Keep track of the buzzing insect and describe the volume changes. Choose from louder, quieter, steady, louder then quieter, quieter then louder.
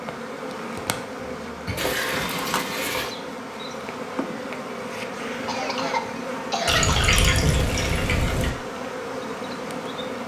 steady.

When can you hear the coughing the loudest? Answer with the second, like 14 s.
7 s.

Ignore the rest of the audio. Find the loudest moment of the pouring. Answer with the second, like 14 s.
7 s.